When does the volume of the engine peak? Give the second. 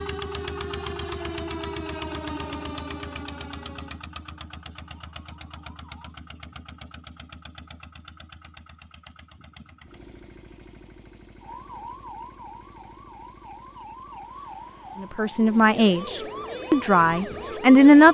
1 s.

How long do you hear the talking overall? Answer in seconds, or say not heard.
3 s.